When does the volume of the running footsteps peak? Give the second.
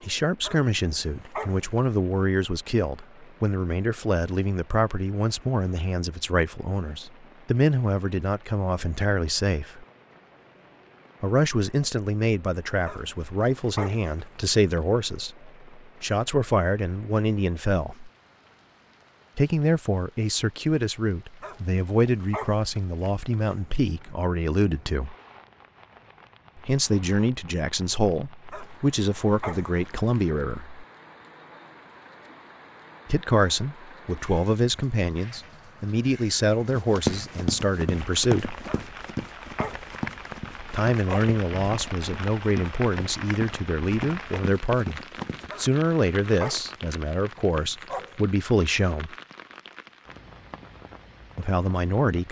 37 s.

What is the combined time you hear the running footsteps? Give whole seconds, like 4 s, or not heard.
9 s.